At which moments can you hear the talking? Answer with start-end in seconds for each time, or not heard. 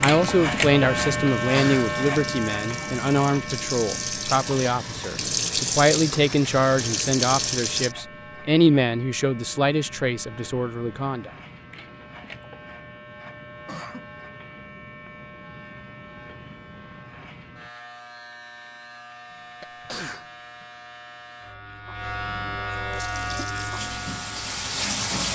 0.0-11.3.